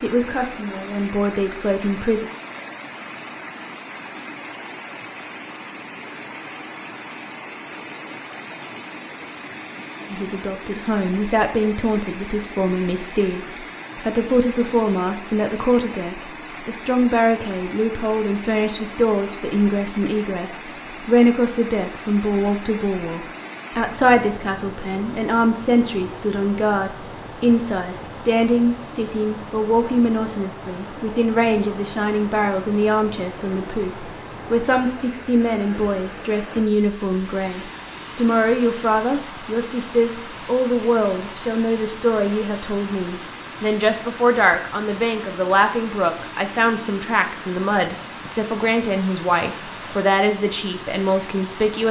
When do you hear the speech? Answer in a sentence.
You can hear the speech from 0.0 to 2.2 s and from 10.1 to 51.8 s.